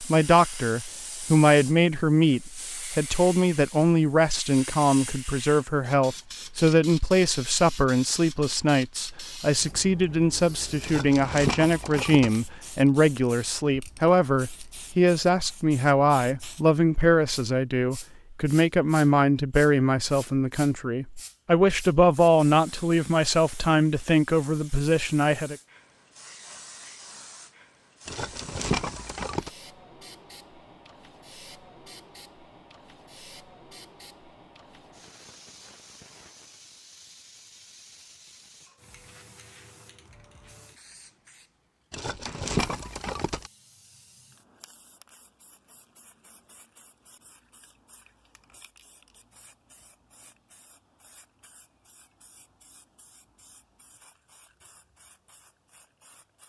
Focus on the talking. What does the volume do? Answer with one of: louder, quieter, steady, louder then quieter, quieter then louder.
steady.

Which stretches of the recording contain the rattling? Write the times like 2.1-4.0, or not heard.
10.8-12.4, 28.1-29.5, 41.9-43.5.